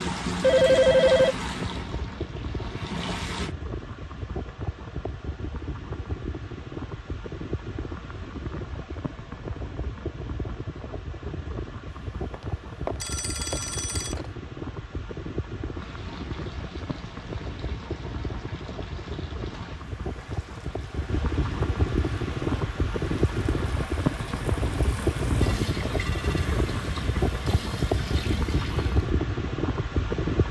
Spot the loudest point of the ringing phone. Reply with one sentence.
The loudest moment of the ringing phone is at 1 second.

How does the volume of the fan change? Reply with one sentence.
The volume of the fan goes up.